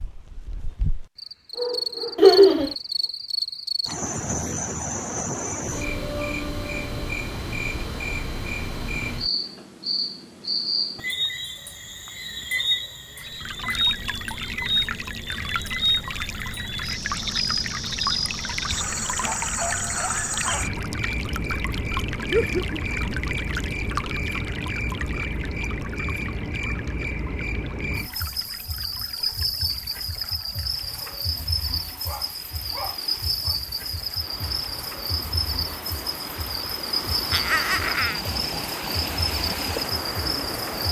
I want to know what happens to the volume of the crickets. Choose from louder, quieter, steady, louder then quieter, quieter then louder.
steady.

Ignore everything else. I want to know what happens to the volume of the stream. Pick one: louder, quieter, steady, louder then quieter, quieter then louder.
quieter then louder.